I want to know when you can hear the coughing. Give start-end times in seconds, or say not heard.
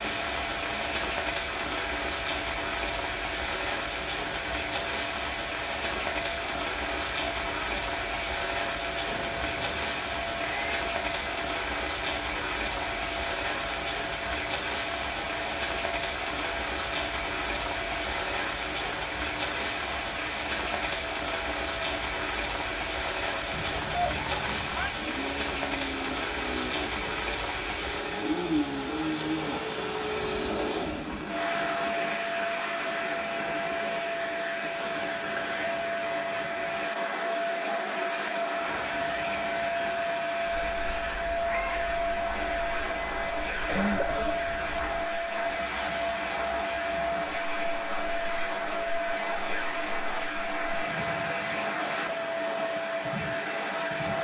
43.5-44.5.